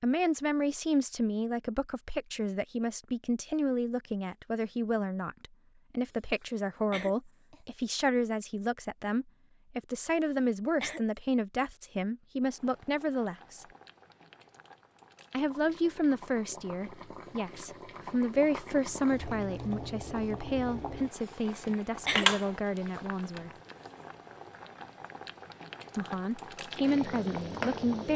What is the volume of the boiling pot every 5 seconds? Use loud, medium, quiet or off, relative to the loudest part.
off, off, quiet, medium, loud, loud.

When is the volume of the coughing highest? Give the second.
22 s.